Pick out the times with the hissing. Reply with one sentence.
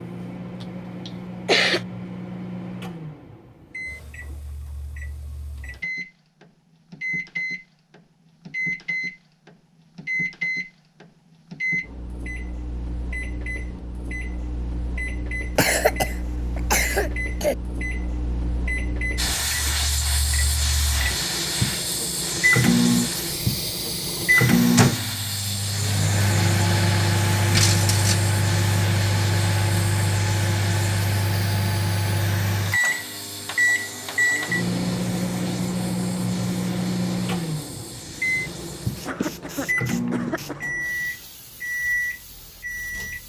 The hissing can be heard from 19.1 to 43.2 s.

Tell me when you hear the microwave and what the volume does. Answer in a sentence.
The microwave can be heard from 0.0 to 43.2 s, getting louder.